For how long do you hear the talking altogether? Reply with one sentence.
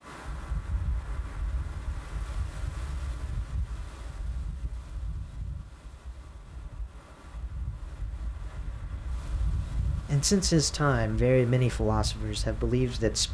You can hear the talking for 3 seconds altogether.